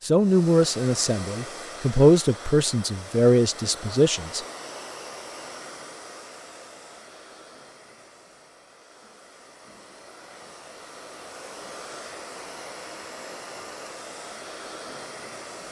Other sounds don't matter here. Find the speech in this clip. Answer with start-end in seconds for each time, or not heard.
0.0-4.4.